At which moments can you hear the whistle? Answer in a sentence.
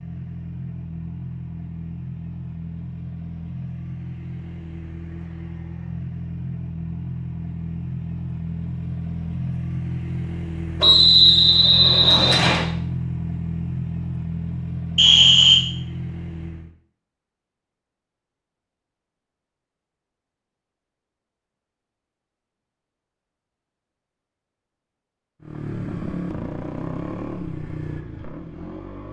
The whistle can be heard from 10.8 to 12.7 s and from 14.9 to 15.6 s.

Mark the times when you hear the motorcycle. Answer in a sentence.
The motorcycle can be heard from 0.0 to 16.7 s and from 25.4 to 29.0 s.